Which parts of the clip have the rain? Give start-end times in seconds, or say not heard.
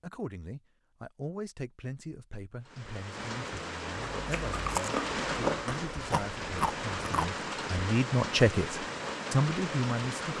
2.6-10.3.